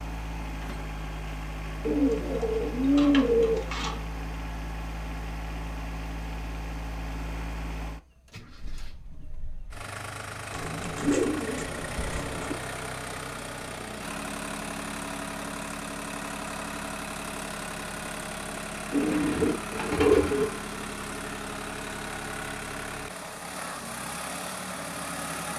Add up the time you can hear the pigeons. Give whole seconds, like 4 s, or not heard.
6 s.